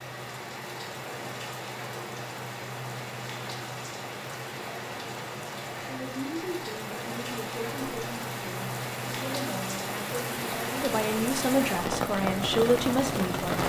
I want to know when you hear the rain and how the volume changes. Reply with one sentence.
The rain can be heard from 0.0 to 13.6 s, getting louder.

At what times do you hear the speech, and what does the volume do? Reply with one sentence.
You can hear the speech from 5.8 to 13.6 s, getting louder.